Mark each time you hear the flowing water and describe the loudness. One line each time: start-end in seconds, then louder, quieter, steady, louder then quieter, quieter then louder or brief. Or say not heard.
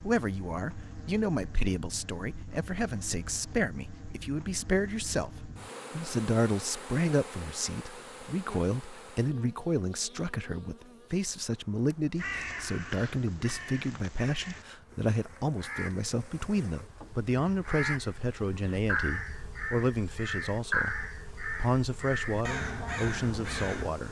not heard.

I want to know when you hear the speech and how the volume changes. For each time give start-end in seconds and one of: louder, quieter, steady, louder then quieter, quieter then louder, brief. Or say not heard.
0.0-24.0 steady.